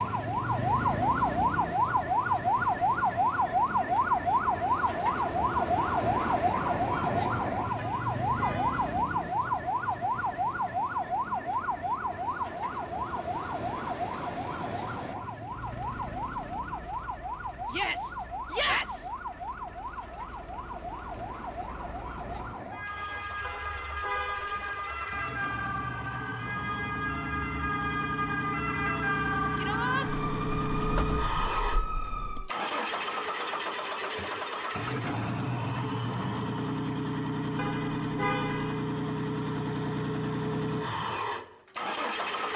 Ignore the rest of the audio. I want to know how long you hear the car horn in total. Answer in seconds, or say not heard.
4 s.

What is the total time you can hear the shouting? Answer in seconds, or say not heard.
2 s.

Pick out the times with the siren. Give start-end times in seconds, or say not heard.
0.0-32.5.